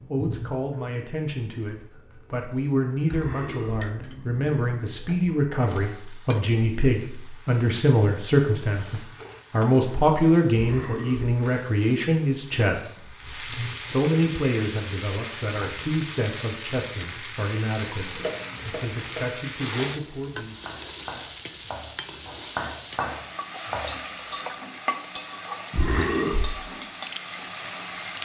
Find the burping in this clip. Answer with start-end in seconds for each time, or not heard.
3.0-3.9, 10.5-11.4, 25.7-26.6.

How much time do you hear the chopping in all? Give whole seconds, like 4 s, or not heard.
6 s.